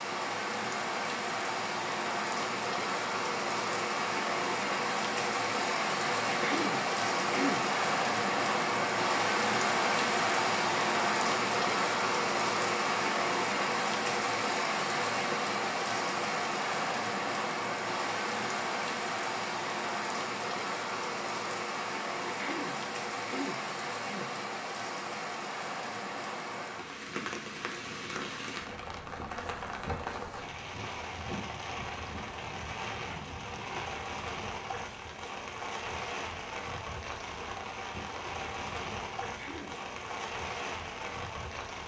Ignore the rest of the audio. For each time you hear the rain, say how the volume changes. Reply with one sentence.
The rain can be heard from 0.0 to 41.8 s, getting quieter.